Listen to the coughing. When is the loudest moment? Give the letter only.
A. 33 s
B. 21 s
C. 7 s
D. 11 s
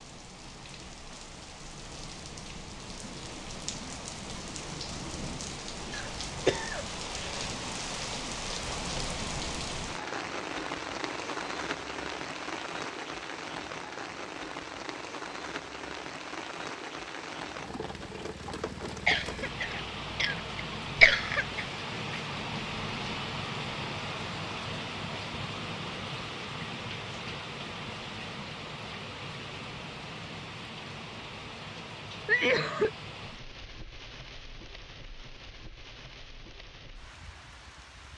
B.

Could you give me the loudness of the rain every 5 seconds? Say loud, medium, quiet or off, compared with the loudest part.
medium, loud, loud, loud, loud, loud, medium, quiet.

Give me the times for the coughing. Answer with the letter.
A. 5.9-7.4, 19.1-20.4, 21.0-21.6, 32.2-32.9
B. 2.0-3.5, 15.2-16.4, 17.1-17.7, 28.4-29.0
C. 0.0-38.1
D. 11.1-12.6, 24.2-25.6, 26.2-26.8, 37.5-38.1
A.